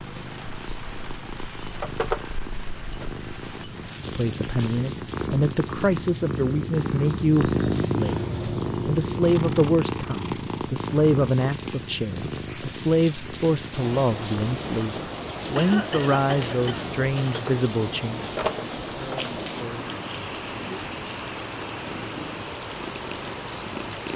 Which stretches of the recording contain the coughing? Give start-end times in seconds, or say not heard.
15.6-16.9.